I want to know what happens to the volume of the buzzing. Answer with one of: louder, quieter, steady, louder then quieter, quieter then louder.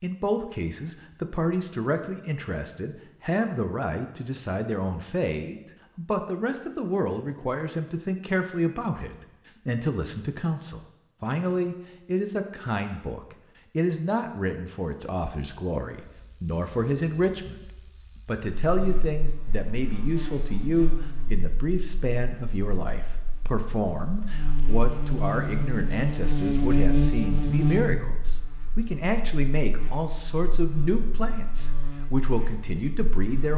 louder then quieter.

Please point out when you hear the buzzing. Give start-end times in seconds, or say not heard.
16.0-33.5.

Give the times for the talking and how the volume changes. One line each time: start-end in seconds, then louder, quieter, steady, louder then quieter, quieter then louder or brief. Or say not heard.
0.0-17.6 steady
18.2-33.5 steady.